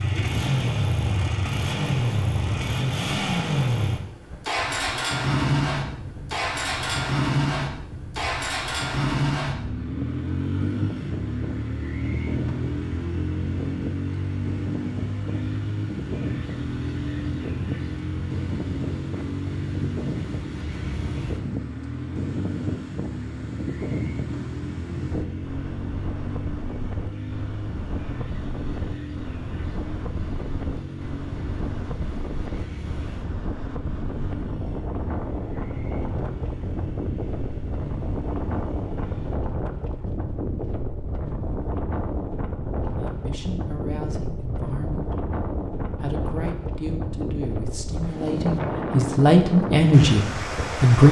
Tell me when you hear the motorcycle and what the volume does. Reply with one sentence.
You can hear the motorcycle from 0.0 to 39.4 s, getting quieter.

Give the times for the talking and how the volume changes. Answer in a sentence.
You can hear the talking briefly from 42.9 to 45.2 s; and from 46.0 to 51.0 s, getting louder.